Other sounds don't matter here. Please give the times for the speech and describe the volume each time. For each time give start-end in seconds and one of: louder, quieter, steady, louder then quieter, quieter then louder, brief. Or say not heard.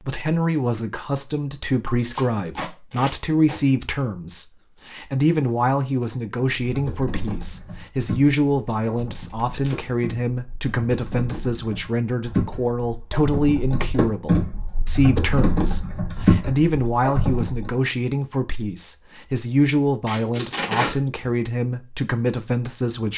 0.1-23.1 steady.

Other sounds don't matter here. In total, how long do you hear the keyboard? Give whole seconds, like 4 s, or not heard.
11 s.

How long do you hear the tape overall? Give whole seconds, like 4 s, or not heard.
4 s.